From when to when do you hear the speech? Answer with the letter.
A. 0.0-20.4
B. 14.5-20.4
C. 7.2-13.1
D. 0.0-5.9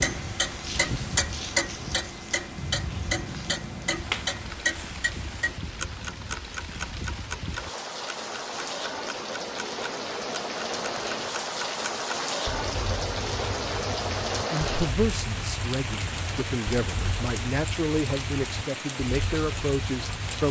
B.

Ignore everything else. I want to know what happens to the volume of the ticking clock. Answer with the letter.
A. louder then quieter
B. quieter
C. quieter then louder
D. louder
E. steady
B.